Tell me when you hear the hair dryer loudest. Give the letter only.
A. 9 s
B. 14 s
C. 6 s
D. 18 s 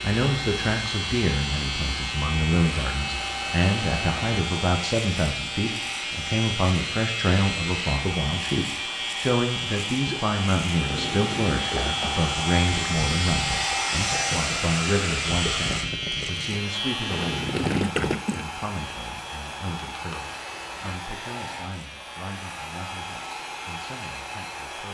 B.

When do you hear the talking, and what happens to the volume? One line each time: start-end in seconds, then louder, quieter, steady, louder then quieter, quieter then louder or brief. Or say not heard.
0.0-24.8 quieter.